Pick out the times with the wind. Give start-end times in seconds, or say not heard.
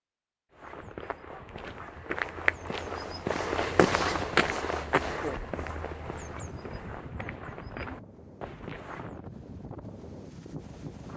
5.0-11.1.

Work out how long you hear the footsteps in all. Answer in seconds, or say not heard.
9 s.